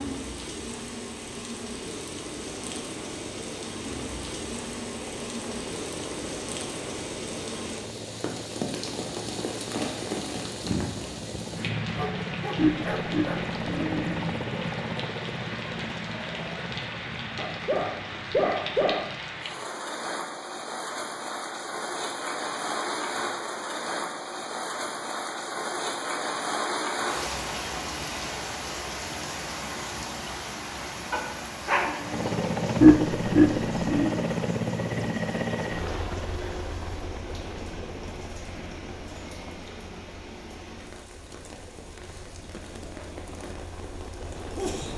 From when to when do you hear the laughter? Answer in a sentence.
The laughter can be heard from 12.6 to 14.2 s and from 32.8 to 34.1 s.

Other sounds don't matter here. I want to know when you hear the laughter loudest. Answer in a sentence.
The volume of the laughter peaks at 33 seconds.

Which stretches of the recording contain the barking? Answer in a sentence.
You can hear the barking from 11.8 to 13.4 s, from 17.4 to 19.1 s and from 31.1 to 32.2 s.